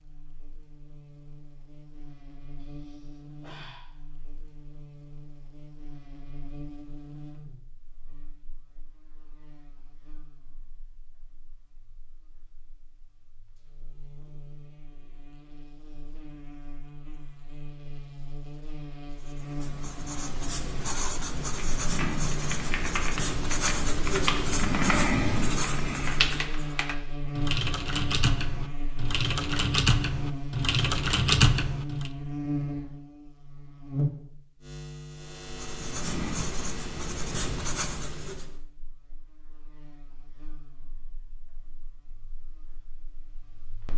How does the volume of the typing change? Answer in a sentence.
The volume of the typing goes up.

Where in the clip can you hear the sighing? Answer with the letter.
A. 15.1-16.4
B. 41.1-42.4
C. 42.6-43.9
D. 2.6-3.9
D.